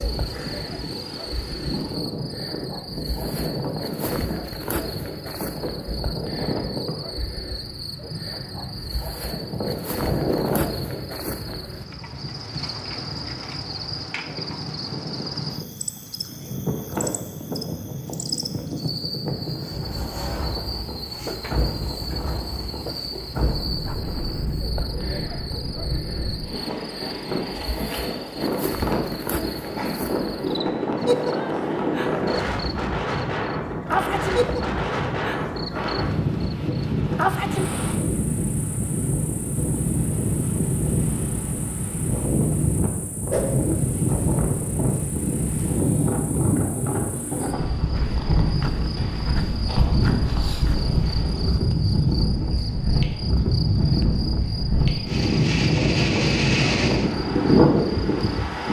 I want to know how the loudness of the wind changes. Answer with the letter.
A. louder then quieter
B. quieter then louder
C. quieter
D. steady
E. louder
E.